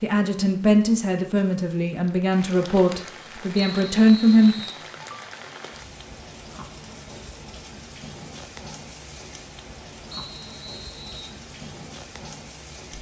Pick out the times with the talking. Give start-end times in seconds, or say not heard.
0.0-4.5.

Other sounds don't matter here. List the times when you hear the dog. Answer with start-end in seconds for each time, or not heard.
not heard.